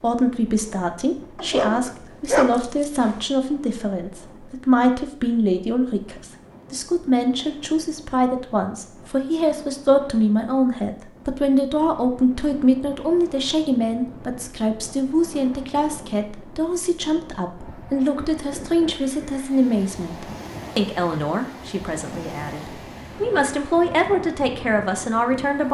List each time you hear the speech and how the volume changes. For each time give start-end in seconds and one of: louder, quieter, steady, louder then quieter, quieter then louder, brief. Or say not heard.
0.0-25.6 steady.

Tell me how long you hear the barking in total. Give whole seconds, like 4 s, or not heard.
2 s.